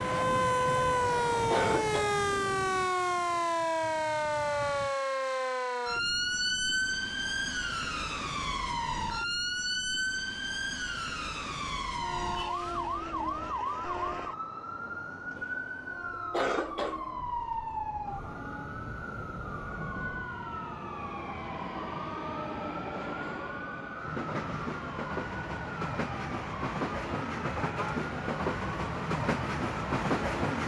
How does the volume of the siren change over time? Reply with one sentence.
The volume of the siren goes down.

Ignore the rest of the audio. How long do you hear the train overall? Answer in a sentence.
The train can be heard for 22 seconds in total.